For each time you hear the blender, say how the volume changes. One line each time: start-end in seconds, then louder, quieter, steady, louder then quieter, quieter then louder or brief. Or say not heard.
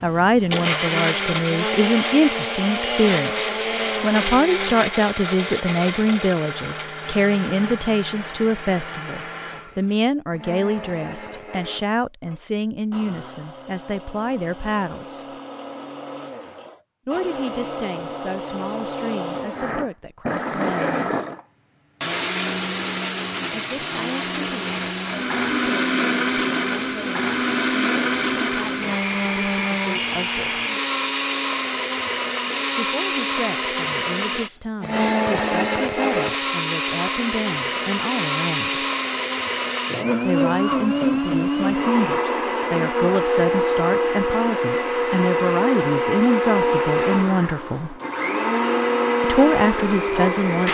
0.0-50.6 quieter then louder.